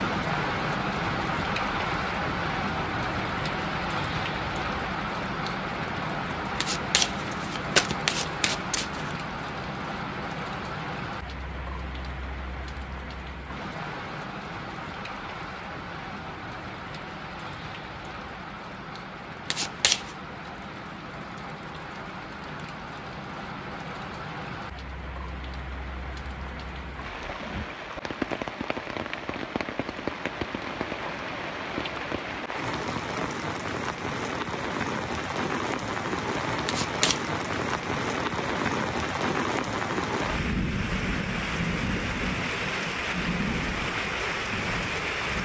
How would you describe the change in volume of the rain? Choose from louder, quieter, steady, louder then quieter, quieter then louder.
quieter then louder.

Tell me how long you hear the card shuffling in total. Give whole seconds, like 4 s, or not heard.
4 s.